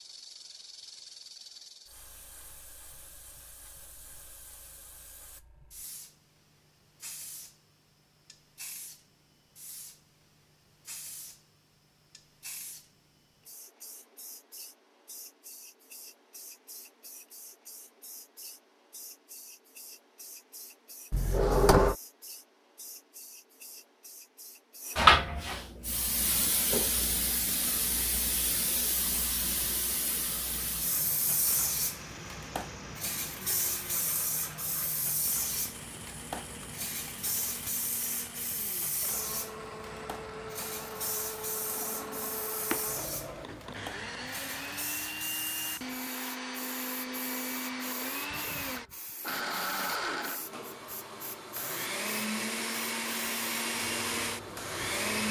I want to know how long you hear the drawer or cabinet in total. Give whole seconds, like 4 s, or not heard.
2 s.